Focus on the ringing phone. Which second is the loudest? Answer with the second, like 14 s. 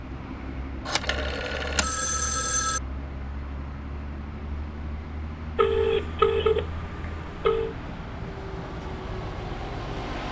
6 s.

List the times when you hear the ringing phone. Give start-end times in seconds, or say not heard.
0.8-2.8, 5.5-7.8.